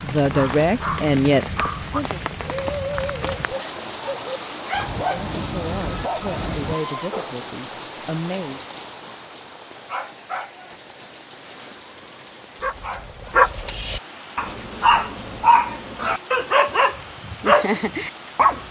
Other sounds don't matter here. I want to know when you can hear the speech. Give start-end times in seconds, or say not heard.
0.0-2.2, 4.9-8.6.